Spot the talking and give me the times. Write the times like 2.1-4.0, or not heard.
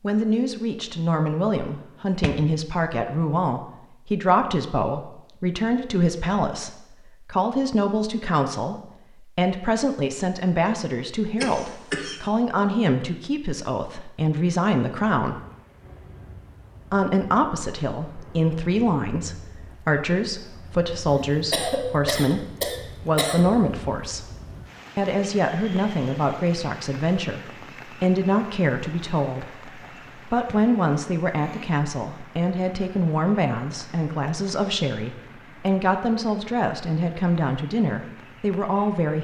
0.0-15.4, 16.9-22.4, 23.1-24.2, 24.9-39.2.